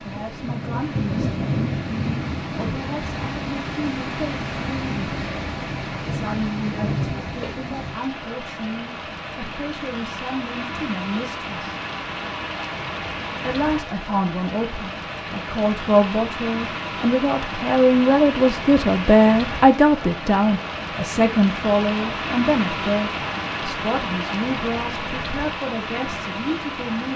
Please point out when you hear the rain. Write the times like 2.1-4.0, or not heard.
0.0-27.1.